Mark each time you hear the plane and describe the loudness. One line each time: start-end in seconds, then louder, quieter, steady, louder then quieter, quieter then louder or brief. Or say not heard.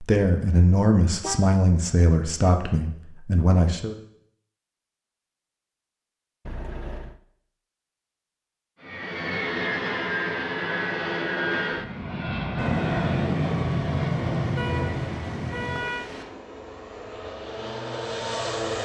8.8-18.7 quieter.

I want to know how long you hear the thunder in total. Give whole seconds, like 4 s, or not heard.
4 s.